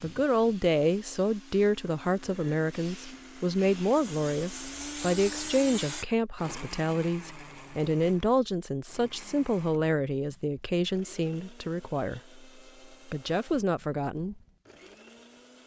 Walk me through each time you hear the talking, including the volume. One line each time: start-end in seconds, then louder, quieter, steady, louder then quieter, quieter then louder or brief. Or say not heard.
0.0-12.4 steady
13.1-14.4 brief.